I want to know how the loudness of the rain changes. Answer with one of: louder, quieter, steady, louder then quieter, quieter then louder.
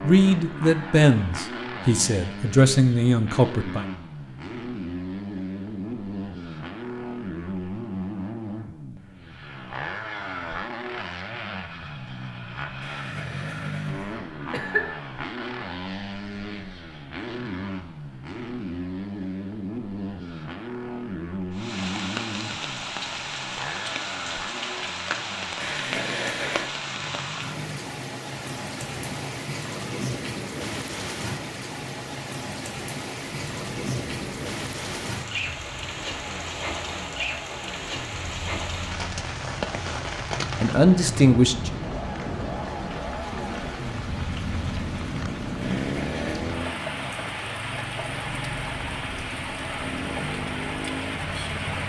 steady.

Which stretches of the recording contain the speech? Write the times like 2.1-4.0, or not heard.
0.0-3.9, 40.6-41.7.